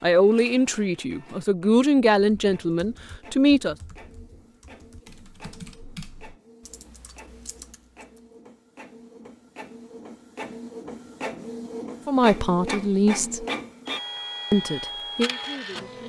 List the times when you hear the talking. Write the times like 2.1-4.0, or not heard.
0.0-3.8, 12.1-13.4, 14.5-16.0.